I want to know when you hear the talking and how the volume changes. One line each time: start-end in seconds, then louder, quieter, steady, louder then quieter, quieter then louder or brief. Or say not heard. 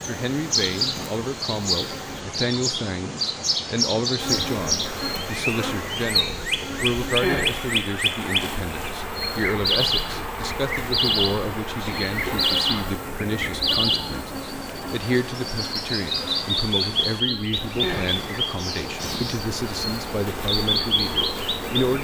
0.1-21.9 steady.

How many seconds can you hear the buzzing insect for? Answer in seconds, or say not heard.
20 s.